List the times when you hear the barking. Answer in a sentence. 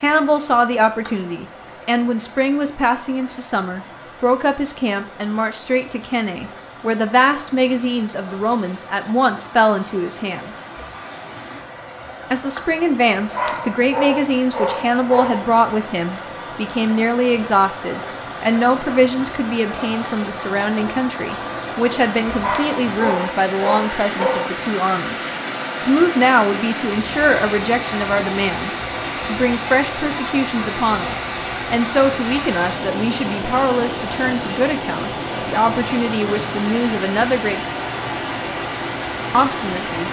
You can hear the barking from 13.3 to 15.5 s and from 22.4 to 24.6 s.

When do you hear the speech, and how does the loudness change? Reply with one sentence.
The speech can be heard from 0.0 to 10.6 s, at a steady volume; from 12.3 to 37.6 s, at a steady volume; and briefly from 39.3 to 40.0 s.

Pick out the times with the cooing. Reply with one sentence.
You can't hear the cooing here.